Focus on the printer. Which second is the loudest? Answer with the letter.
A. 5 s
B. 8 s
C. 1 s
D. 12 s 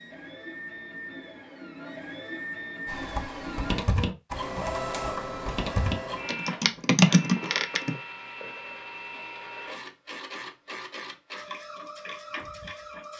A.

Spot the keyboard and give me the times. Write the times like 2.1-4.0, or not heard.
2.9-8.0.